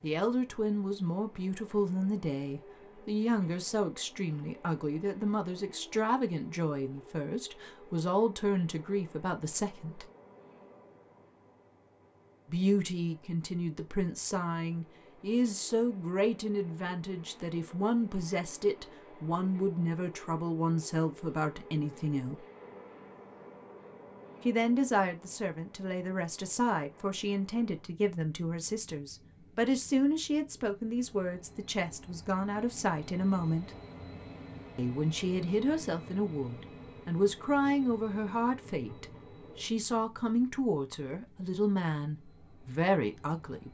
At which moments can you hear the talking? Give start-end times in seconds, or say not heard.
0.0-10.1, 12.5-22.4, 24.4-33.7, 34.8-43.7.